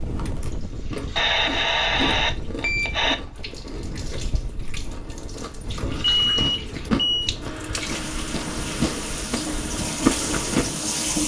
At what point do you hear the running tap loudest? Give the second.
11 s.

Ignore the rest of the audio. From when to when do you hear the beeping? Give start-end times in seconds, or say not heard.
1.1-3.1, 6.0-7.3.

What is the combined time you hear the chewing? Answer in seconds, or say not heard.
11 s.